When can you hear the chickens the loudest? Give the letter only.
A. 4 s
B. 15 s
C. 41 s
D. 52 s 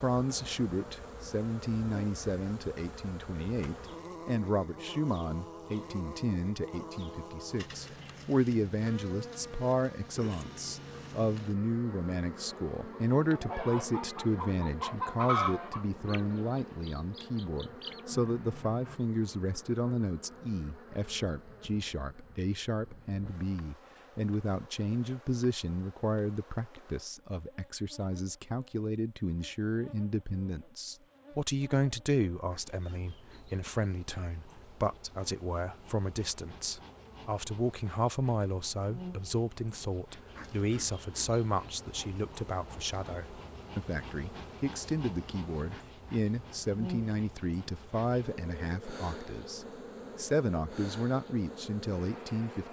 B.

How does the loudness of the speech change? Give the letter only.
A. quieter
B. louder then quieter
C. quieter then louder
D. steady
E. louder
D.